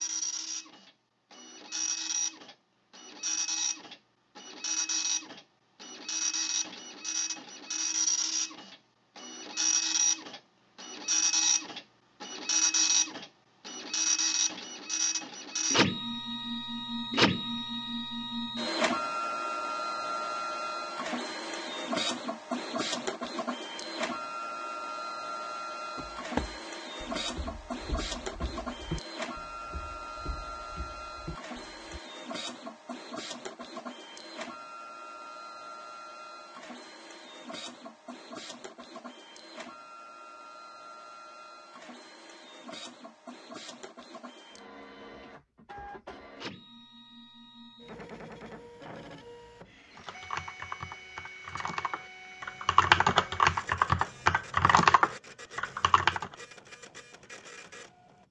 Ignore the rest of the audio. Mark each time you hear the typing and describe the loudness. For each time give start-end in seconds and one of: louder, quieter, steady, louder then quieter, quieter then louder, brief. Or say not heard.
50.0-56.3 louder.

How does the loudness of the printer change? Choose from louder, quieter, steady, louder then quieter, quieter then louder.
quieter.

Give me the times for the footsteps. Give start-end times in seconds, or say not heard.
25.9-32.0.